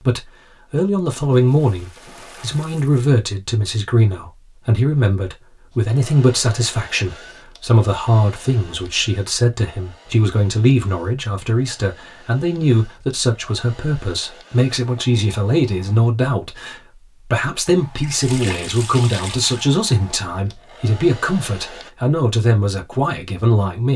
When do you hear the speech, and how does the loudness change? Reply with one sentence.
You can hear the speech from 0.0 to 23.9 s, at a steady volume.